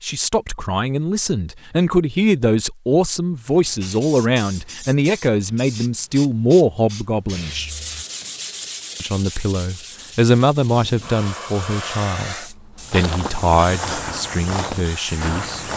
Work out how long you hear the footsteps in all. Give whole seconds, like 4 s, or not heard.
3 s.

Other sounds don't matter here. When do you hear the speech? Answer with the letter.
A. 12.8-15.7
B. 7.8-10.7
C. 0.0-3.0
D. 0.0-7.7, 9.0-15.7
D.